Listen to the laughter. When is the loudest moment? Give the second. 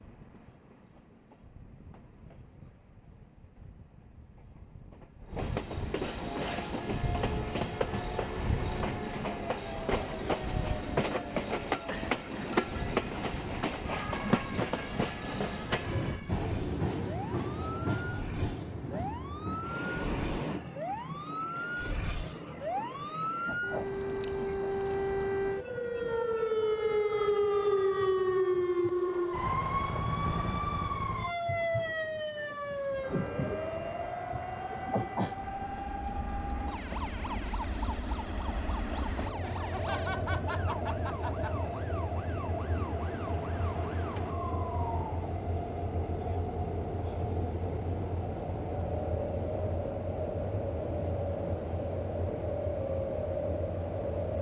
40 s.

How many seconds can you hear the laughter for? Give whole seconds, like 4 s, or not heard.
3 s.